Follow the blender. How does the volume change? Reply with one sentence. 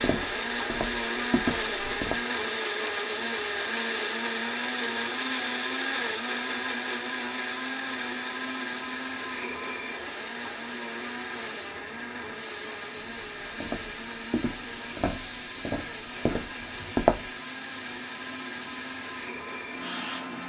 The loudness of the blender goes down.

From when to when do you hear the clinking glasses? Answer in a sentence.
You can't hear the clinking glasses here.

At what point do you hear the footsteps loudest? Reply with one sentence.
The volume of the footsteps peaks at 17 seconds.